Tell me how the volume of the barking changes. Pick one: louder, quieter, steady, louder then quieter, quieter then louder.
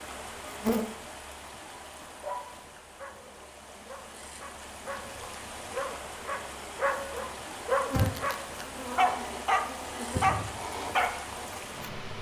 louder.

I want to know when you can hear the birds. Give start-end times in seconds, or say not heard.
not heard.